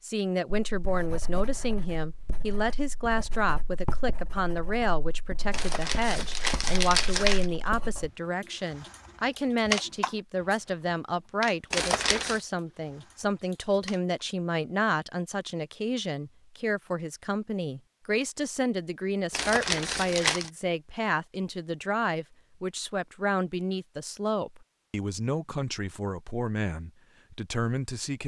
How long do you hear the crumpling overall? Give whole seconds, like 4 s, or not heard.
4 s.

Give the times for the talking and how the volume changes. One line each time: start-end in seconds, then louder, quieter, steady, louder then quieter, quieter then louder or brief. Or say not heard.
0.0-28.2 steady.